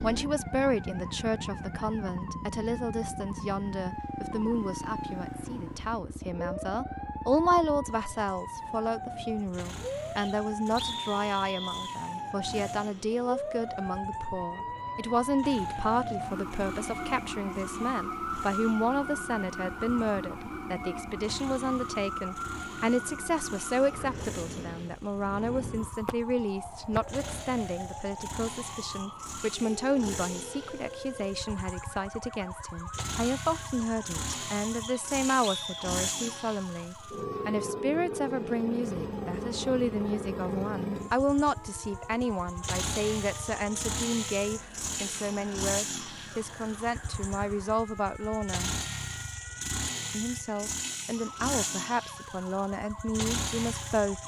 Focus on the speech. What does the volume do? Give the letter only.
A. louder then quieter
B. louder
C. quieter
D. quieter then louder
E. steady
E.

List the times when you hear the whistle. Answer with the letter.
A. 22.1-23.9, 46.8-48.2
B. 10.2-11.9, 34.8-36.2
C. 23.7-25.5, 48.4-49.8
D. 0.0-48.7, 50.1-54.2
B.